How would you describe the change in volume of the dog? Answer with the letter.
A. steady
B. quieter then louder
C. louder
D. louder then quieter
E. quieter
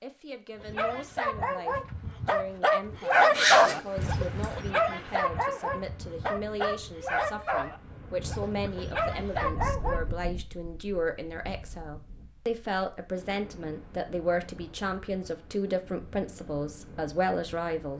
D.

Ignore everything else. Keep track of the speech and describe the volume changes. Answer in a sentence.
The loudness of the speech goes up.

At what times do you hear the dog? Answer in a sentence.
You can hear the dog from 0.6 to 10.1 s.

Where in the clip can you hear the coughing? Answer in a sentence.
You can't hear the coughing here.